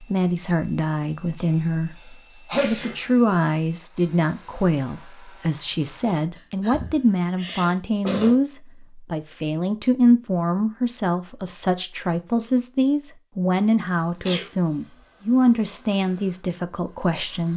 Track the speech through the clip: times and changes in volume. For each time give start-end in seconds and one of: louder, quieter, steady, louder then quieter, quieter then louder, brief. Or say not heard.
0.0-17.5 steady.